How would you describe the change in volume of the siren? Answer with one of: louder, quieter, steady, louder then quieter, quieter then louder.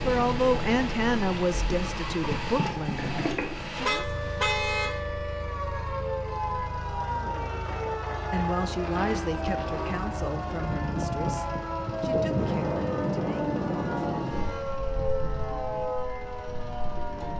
steady.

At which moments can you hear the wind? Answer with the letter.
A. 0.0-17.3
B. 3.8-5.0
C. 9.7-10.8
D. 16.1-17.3
A.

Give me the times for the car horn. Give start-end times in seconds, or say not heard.
3.8-5.0.